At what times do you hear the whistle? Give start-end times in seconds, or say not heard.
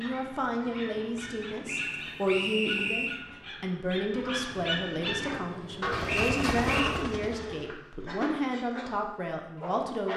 1.6-3.2, 6.0-7.0.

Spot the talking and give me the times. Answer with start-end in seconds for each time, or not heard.
0.0-10.1.